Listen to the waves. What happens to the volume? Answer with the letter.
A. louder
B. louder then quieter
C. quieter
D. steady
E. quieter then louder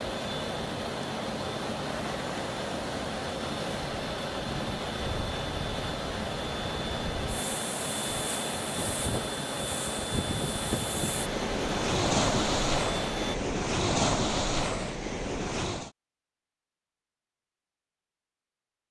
A.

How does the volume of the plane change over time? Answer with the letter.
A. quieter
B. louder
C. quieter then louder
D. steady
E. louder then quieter
D.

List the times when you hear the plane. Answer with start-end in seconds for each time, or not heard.
0.0-13.3.